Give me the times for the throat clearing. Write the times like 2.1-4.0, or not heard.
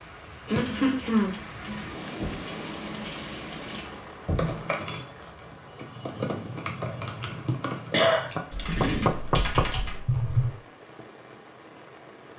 0.5-1.3, 7.5-9.1.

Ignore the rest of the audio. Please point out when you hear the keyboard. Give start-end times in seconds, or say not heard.
0.5-10.5.